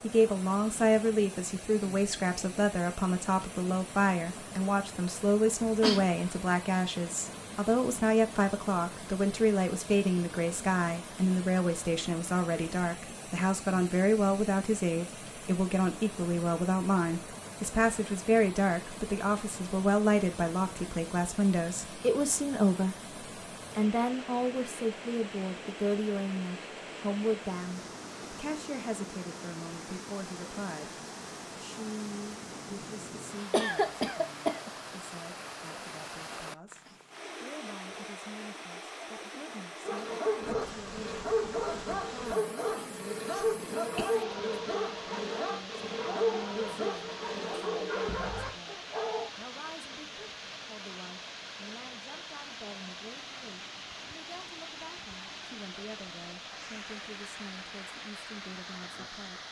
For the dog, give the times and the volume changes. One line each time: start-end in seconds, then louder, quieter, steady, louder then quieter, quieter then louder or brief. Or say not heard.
39.8-49.3 steady.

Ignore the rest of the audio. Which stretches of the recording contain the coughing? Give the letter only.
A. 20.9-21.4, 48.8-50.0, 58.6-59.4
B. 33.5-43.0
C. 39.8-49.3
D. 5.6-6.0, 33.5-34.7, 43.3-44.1
D.